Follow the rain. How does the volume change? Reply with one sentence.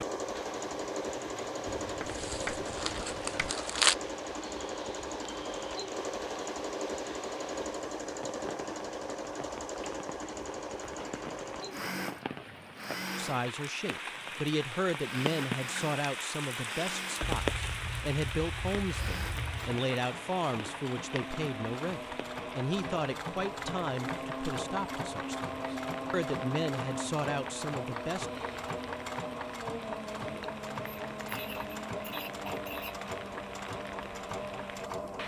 The loudness of the rain goes up, then down.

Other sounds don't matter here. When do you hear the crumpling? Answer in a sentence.
The crumpling can be heard from 2.0 to 4.0 s.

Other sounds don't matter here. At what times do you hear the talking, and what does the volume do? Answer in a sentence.
You can hear the talking from 13.2 to 28.3 s, at a steady volume.